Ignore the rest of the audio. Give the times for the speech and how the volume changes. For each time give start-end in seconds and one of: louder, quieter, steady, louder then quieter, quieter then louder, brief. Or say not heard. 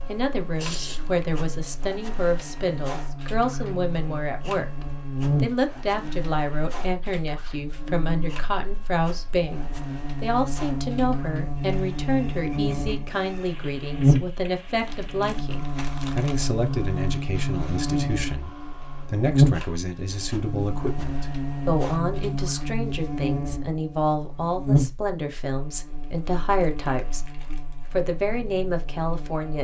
0.1-29.5 steady.